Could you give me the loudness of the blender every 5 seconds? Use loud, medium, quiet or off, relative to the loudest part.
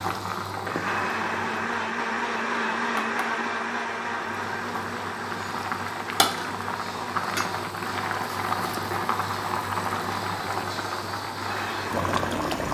loud, medium, medium.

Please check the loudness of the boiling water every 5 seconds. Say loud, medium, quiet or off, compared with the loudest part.
medium, loud, loud.